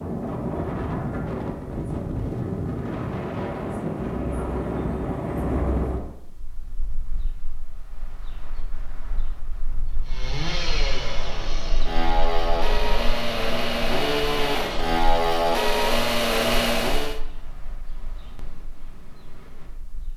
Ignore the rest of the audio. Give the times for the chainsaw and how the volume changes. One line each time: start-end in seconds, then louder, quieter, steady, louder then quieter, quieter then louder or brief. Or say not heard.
10.1-17.2 louder.